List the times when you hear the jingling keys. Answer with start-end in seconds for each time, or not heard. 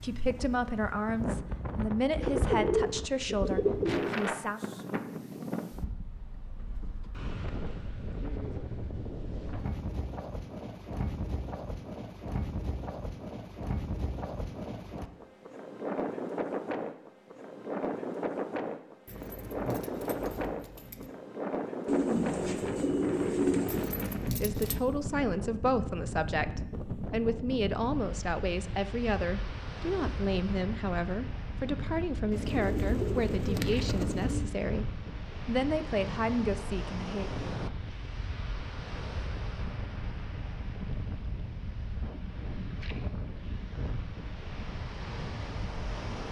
19.1-21.1, 23.6-24.9.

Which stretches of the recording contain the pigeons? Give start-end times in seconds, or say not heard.
2.2-4.2, 21.9-23.9, 32.3-34.5.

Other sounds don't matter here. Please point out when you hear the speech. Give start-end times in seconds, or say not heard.
0.0-4.7, 24.4-37.3.